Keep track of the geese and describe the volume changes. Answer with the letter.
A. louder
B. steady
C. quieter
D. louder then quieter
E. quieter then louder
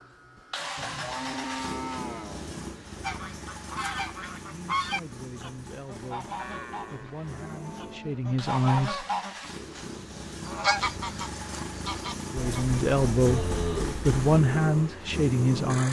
E.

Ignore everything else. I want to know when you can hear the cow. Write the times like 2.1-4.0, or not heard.
0.8-2.8, 6.3-8.4, 12.3-14.2.